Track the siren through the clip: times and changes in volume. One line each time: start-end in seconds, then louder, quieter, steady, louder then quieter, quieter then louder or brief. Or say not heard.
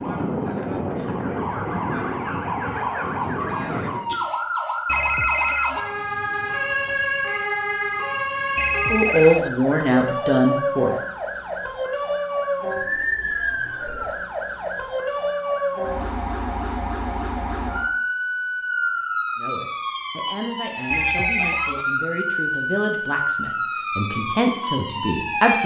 0.0-25.6 steady.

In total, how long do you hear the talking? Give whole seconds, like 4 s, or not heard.
8 s.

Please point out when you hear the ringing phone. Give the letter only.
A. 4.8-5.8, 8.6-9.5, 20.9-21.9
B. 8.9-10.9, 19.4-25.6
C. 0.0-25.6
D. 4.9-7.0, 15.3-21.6
A.